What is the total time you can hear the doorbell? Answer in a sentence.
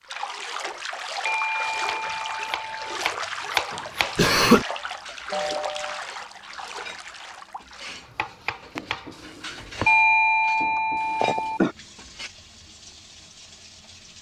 You can hear the doorbell for 4 seconds altogether.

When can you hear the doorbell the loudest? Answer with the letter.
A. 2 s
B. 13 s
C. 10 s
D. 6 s
C.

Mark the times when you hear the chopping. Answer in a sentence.
The chopping can be heard from 1.6 to 4.2 s and from 8.0 to 9.9 s.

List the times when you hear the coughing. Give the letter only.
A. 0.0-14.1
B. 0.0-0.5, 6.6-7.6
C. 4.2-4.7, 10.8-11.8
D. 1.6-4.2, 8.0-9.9
C.